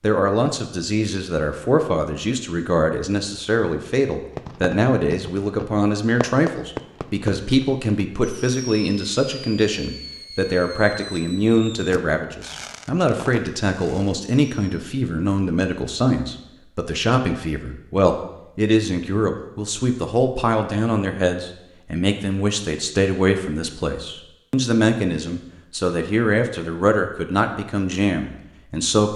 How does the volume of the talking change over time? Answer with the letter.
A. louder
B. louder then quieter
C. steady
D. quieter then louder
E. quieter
C.